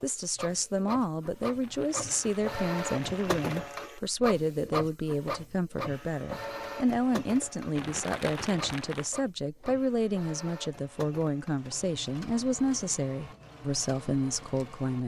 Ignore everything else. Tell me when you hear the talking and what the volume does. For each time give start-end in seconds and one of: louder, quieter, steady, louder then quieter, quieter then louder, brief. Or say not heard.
0.0-15.0 steady.